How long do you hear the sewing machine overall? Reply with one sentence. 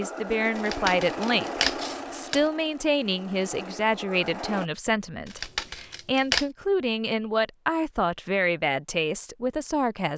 You can hear the sewing machine for 5 seconds altogether.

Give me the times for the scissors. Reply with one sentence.
You can hear the scissors from 0.6 to 2.5 s and from 5.2 to 6.5 s.